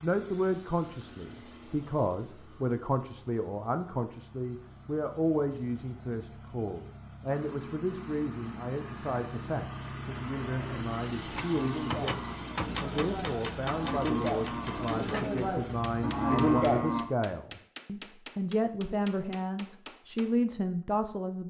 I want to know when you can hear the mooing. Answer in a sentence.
You can hear the mooing from 10.6 to 17.1 s.